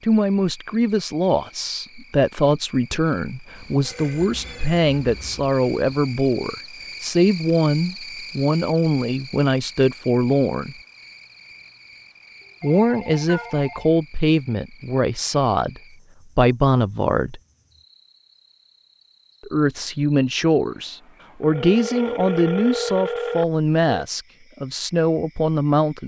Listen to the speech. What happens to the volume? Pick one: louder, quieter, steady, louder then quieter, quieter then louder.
steady.